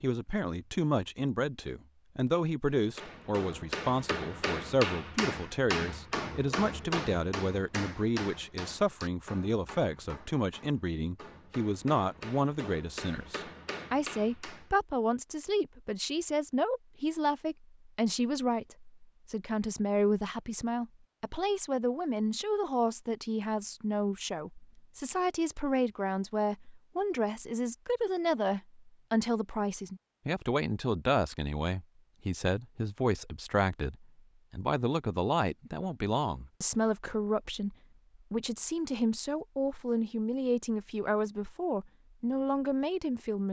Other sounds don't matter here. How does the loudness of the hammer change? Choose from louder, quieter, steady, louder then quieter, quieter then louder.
quieter then louder.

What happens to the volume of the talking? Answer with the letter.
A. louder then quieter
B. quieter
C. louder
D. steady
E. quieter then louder
D.